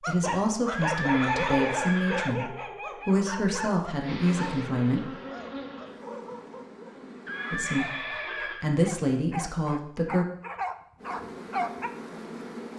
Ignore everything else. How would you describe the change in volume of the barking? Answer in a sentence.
The loudness of the barking goes down, then up.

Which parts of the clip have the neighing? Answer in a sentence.
The neighing can be heard from 0.7 to 2.4 s and from 7.2 to 8.7 s.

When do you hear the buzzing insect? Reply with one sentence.
You can hear the buzzing insect from 4.0 to 7.7 s and from 10.9 to 12.7 s.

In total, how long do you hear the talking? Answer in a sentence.
You can hear the talking for 8 seconds altogether.